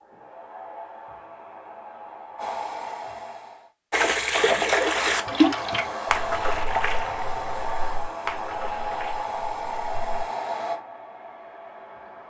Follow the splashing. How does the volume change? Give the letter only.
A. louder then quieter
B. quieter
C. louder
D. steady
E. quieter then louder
B.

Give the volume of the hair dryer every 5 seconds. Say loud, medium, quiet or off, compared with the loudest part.
medium, loud, loud.